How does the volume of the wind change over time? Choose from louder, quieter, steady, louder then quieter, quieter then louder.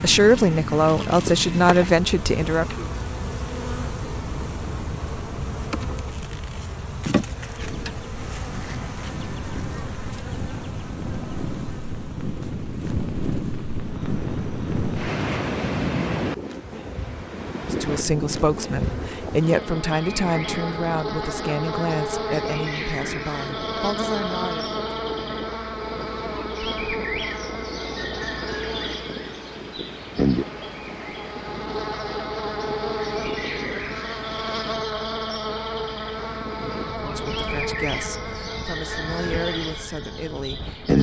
louder then quieter.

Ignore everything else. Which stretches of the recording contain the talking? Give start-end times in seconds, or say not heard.
0.0-2.9, 17.6-24.8, 36.9-40.9.